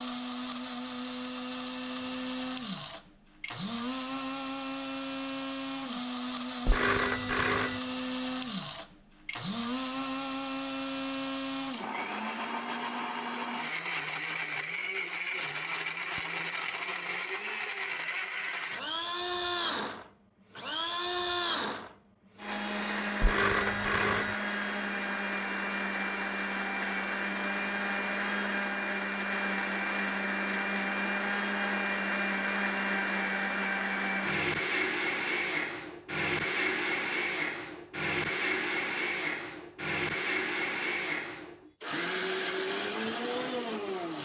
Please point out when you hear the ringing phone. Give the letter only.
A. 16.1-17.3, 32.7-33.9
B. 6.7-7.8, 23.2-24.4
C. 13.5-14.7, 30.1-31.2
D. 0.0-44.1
B.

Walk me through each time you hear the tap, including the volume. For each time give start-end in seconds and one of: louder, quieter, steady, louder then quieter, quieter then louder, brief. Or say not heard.
not heard.